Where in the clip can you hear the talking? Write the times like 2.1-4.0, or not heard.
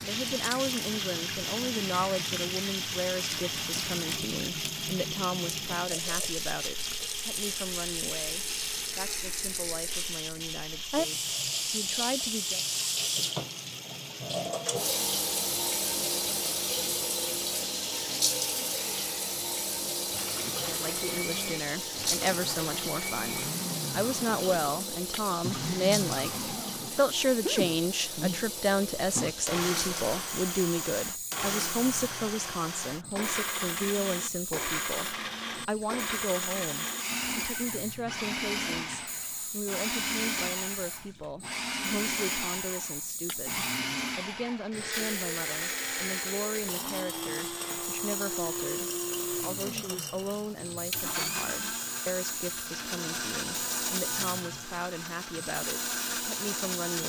0.0-12.6, 20.6-57.0.